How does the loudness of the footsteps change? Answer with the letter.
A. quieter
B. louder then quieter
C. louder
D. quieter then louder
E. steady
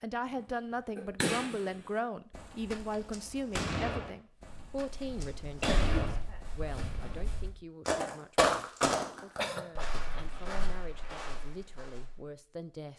B.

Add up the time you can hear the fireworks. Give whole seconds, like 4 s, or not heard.
7 s.